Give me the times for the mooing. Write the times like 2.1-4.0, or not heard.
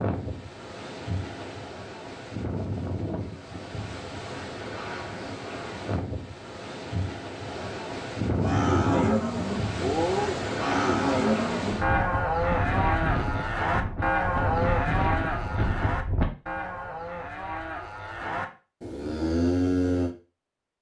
8.4-20.1.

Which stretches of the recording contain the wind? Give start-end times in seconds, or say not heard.
0.0-16.3.